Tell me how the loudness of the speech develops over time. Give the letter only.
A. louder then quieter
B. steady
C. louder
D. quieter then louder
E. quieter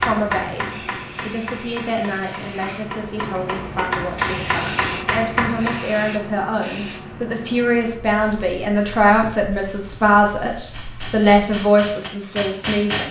C.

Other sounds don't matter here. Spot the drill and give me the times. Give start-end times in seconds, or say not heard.
not heard.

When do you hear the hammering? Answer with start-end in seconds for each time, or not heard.
0.0-6.0, 10.6-13.0.